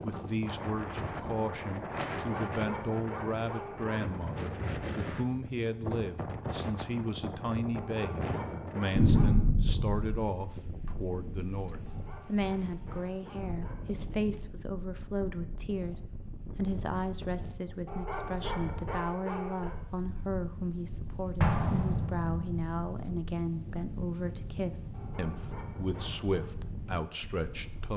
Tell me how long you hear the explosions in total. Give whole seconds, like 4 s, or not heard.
2 s.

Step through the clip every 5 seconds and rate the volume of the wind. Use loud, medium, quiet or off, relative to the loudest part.
loud, loud, medium, medium, medium, medium.